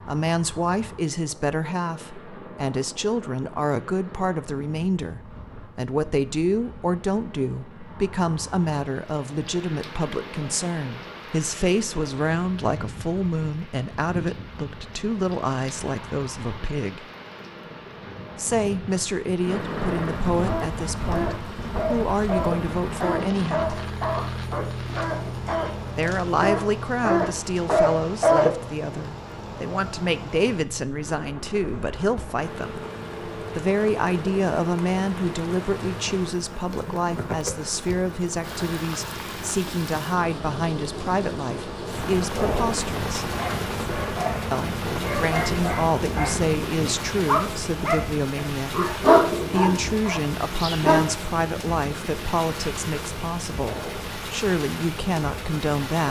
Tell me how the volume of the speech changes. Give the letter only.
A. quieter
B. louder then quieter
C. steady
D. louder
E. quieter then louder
C.